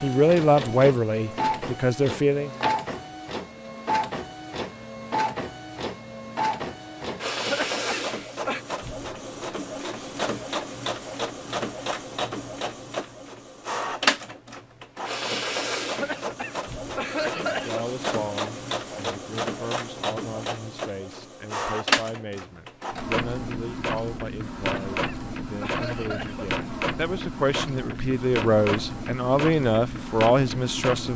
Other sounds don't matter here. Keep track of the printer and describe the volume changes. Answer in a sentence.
The volume of the printer stays about the same.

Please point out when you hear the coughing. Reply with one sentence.
The coughing can be heard from 7.3 to 8.7 s, from 15.8 to 17.9 s and from 24.4 to 26.6 s.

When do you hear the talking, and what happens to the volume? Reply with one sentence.
The talking can be heard briefly from 0.0 to 2.5 s; and from 17.4 to 31.1 s, getting louder.